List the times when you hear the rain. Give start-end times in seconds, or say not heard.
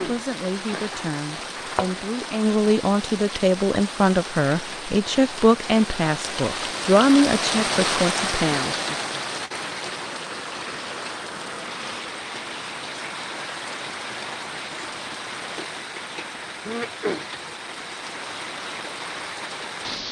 0.0-20.0.